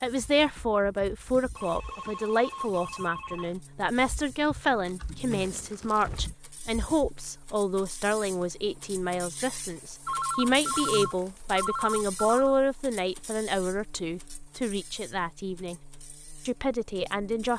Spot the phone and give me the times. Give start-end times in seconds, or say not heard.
1.6-3.5, 10.1-12.6.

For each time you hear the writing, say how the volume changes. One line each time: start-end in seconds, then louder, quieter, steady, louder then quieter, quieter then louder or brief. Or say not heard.
not heard.